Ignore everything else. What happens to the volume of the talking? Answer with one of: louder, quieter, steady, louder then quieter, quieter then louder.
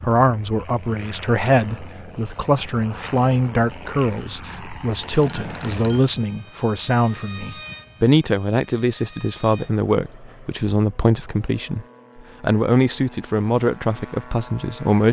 steady.